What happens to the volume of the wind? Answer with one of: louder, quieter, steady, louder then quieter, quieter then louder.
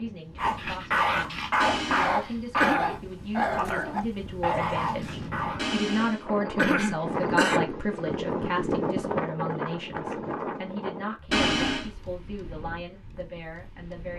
louder then quieter.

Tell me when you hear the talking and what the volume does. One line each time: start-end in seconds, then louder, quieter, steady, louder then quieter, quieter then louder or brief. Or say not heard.
0.0-14.1 louder then quieter.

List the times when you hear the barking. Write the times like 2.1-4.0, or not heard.
0.3-5.7.